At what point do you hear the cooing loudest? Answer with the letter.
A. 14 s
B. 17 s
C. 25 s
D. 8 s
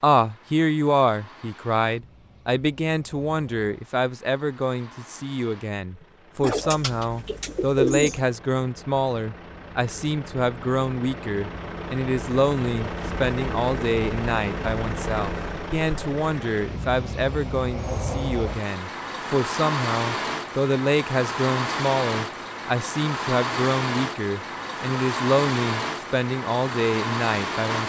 D.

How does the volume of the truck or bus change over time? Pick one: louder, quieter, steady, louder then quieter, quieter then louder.
louder.